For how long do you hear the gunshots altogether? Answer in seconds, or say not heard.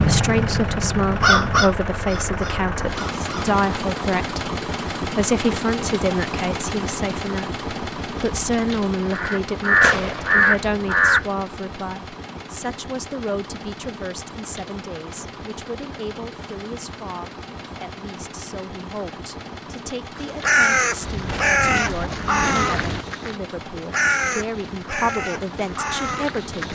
3 s.